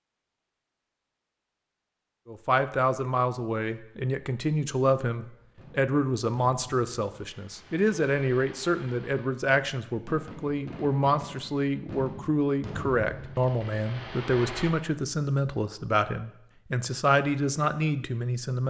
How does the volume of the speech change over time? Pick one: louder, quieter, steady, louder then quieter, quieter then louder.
steady.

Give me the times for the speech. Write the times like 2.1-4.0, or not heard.
2.2-18.6.